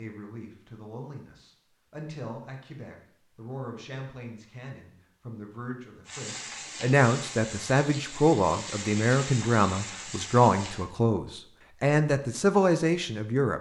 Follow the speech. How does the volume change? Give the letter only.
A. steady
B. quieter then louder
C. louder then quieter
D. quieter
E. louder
E.